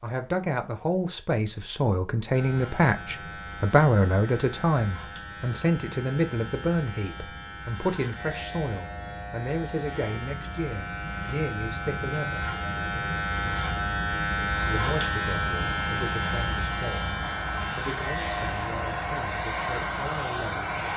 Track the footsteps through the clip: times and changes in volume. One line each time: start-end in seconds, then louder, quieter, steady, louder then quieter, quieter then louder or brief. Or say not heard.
not heard.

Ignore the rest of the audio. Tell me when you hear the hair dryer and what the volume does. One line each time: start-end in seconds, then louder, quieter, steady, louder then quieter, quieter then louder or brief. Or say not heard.
14.5-20.9 louder.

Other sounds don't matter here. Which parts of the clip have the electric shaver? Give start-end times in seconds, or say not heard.
2.3-20.9.